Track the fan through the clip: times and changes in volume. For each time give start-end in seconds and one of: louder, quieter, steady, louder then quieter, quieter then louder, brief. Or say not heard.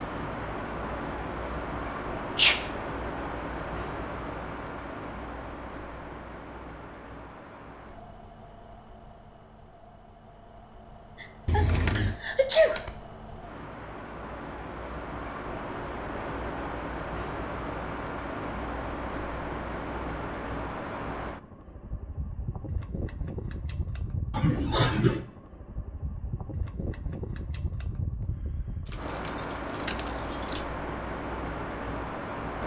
0.0-32.6 quieter then louder.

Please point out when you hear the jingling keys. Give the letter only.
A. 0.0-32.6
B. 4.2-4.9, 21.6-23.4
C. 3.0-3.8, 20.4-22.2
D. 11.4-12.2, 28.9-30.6
D.